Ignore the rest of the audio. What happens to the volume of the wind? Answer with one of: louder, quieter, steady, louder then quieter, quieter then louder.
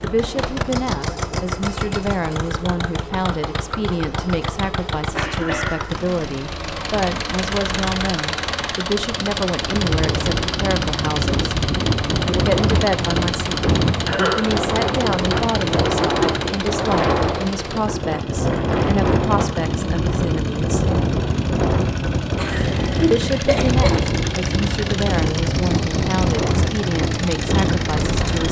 steady.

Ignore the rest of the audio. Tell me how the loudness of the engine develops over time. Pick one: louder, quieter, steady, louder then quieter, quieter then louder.
steady.